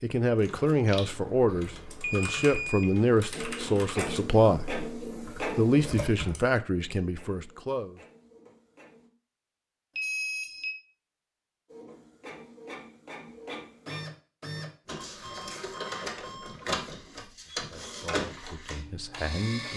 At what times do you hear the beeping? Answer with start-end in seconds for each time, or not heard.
2.0-3.0, 9.9-10.8, 15.2-16.6.